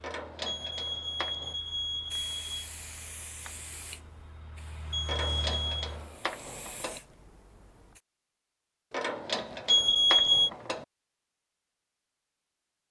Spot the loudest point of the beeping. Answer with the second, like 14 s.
10 s.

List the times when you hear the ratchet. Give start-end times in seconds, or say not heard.
0.0-1.6, 5.0-7.0, 8.9-10.8.